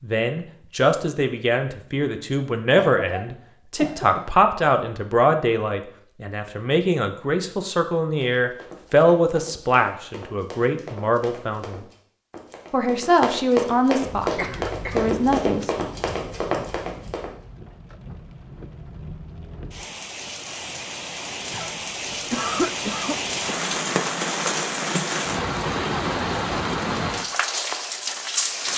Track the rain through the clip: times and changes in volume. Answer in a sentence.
You can hear the rain from 14.1 to 28.7 s, getting louder.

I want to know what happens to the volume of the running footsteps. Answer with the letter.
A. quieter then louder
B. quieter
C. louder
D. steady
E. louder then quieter
C.